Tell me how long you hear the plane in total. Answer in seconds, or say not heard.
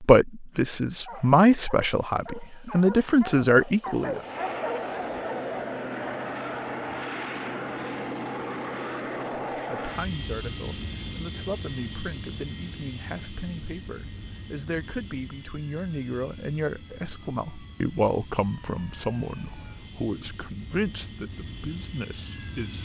19 s.